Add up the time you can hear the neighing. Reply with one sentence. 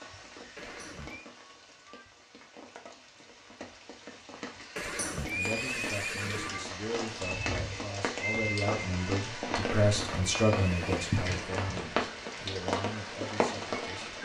The neighing can be heard for 4 seconds in total.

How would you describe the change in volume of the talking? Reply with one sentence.
The loudness of the talking goes up, then down.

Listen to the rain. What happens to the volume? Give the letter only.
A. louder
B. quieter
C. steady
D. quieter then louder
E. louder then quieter
A.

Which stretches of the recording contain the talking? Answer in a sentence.
You can hear the talking from 5.3 to 14.2 s.